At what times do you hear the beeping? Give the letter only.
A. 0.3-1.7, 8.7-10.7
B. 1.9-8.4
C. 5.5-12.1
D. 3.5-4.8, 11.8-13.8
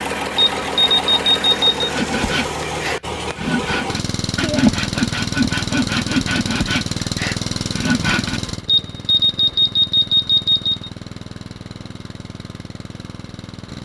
A.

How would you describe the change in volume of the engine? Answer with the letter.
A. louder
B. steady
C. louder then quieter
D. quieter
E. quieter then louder
D.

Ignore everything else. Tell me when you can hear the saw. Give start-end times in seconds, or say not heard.
1.9-8.4.